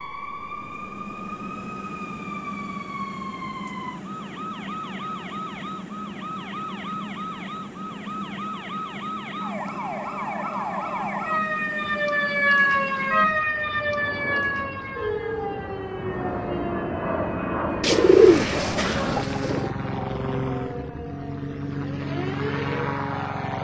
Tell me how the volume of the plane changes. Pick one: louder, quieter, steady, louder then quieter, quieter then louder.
louder.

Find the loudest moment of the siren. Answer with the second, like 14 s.
13 s.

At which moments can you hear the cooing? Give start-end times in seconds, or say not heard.
17.8-19.8.